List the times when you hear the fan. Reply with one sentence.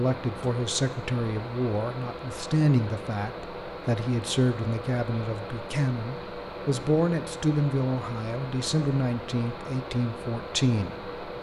The fan can be heard from 0.0 to 11.3 s.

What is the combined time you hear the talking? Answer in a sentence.
You can hear the talking for 11 seconds altogether.